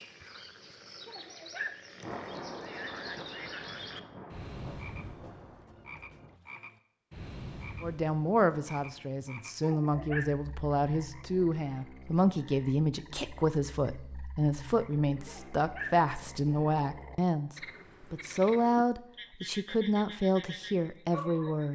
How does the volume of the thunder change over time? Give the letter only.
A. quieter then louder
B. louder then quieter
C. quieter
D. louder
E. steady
C.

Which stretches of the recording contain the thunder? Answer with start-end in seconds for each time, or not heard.
2.0-6.4.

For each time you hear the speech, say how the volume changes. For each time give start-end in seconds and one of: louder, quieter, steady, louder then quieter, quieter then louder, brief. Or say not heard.
7.8-21.7 steady.